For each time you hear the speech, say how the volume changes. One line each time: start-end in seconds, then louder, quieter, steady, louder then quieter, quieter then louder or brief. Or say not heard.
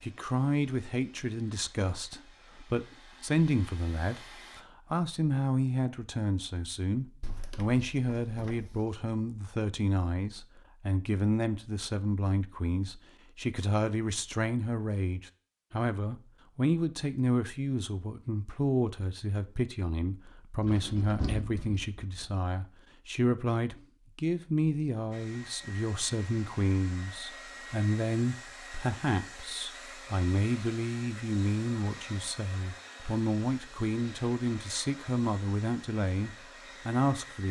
0.0-37.4 steady.